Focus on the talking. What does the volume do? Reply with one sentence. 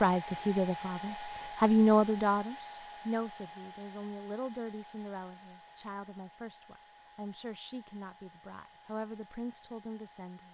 The loudness of the talking goes down.